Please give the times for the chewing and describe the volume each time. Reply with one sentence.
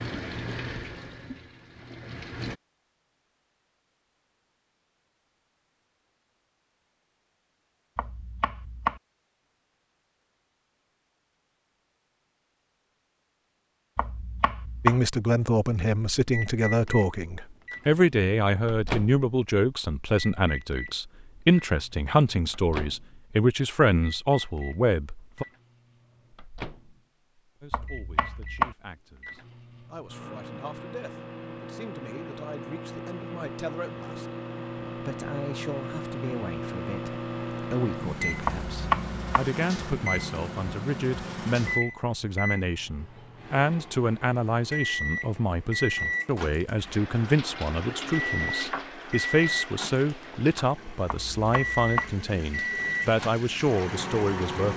The chewing can't be heard in this clip.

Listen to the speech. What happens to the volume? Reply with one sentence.
The loudness of the speech goes down, then up.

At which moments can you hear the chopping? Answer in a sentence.
The chopping can be heard from 8.0 to 9.0 s, from 13.9 to 15.0 s, from 27.7 to 28.8 s, from 38.5 to 39.5 s and from 51.0 to 52.1 s.